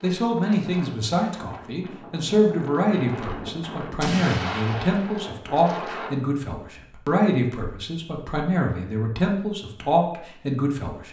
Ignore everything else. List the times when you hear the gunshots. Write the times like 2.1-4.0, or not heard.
4.0-5.3.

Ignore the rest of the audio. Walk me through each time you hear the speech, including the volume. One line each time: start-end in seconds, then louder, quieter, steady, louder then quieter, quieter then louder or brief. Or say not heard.
0.0-11.0 steady.